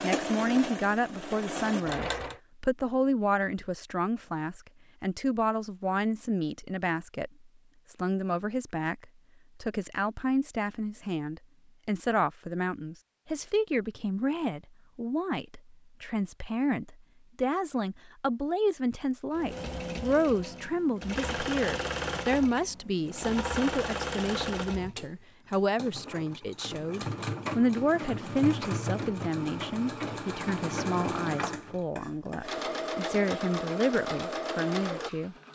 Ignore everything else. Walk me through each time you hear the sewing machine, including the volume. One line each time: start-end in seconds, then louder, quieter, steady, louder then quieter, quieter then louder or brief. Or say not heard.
0.0-2.4 brief
19.3-35.5 steady.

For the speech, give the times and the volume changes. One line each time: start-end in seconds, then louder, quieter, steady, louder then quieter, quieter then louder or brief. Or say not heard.
0.0-7.3 steady
7.9-35.5 steady.